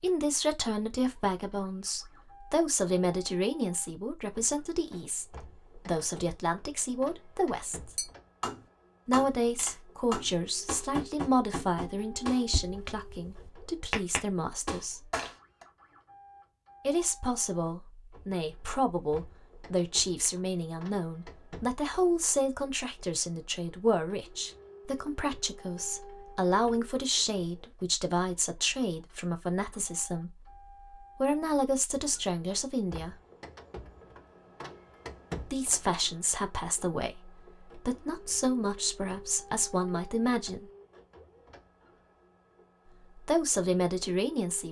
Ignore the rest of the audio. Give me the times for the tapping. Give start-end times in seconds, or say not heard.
8.0-15.7.